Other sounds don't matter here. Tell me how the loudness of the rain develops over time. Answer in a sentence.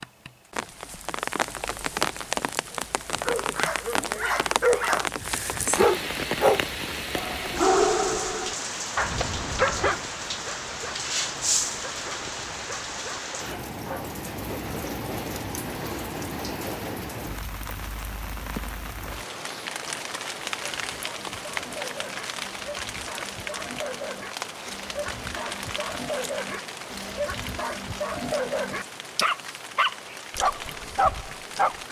The volume of the rain goes down.